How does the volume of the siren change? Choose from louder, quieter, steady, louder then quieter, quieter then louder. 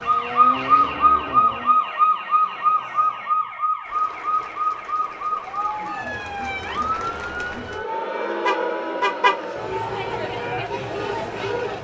quieter.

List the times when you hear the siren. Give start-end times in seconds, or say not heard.
0.0-11.7.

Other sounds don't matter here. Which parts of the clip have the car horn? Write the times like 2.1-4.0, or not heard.
8.4-9.4.